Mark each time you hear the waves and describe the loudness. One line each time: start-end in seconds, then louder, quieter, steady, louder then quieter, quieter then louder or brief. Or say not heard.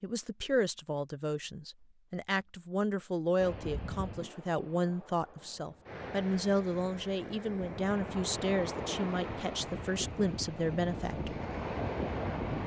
3.4-12.6 louder.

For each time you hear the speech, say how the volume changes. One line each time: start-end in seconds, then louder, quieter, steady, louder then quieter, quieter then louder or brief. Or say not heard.
0.0-11.4 steady.